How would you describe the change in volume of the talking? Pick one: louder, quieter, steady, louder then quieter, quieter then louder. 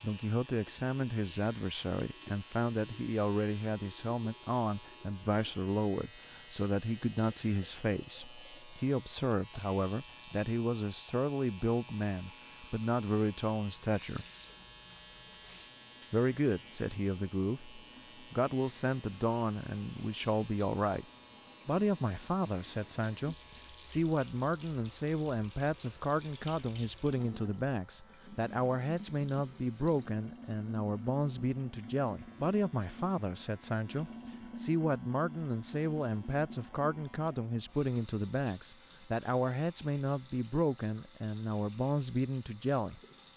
steady.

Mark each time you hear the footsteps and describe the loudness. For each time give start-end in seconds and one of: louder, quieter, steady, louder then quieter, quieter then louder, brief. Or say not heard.
not heard.